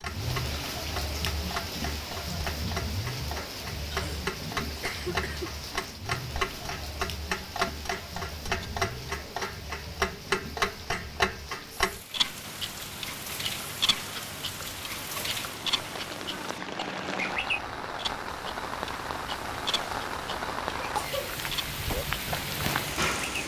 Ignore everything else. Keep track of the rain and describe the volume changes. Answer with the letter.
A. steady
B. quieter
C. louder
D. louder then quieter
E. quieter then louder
E.